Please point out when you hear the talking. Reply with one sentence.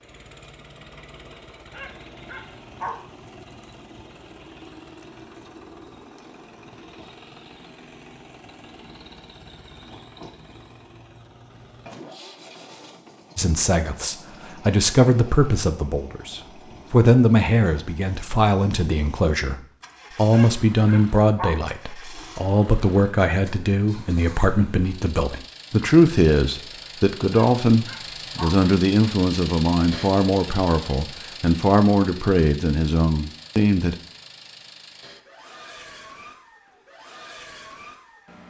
You can hear the talking from 13.3 to 19.6 s and from 20.1 to 34.0 s.